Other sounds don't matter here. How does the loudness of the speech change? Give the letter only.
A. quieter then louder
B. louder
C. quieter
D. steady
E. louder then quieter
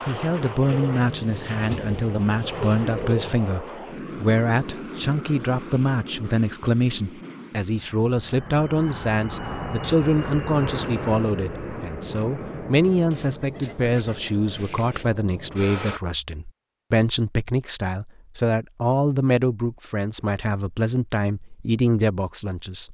D.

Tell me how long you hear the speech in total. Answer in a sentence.
You can hear the speech for 23 seconds altogether.